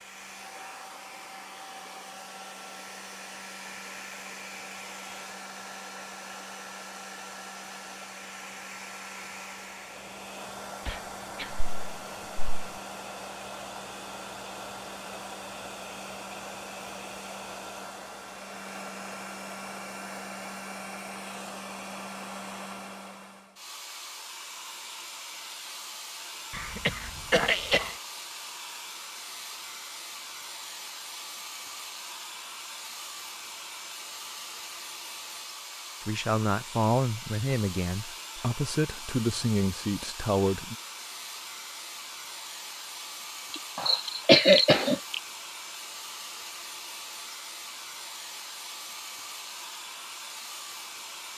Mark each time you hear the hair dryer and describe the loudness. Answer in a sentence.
The hair dryer can be heard from 0.0 to 51.3 s, at a steady volume.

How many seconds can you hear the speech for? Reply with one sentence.
You can hear the speech for 5 seconds altogether.